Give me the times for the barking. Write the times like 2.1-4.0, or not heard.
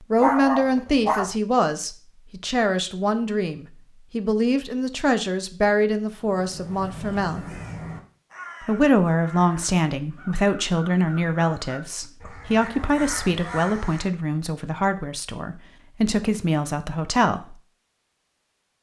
0.2-1.4.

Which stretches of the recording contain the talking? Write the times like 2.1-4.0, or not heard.
0.0-7.4, 8.6-17.6.